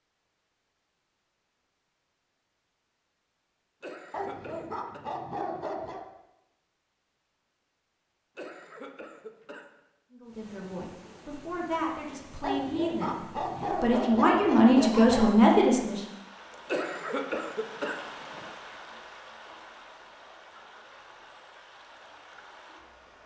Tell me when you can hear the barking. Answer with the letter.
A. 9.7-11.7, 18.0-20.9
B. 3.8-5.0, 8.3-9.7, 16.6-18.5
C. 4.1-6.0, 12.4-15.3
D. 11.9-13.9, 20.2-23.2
C.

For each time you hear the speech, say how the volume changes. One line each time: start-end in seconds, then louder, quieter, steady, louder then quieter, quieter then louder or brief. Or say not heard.
10.1-16.0 louder.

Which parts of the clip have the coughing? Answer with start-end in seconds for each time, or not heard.
3.8-5.0, 8.3-9.7, 16.6-18.5.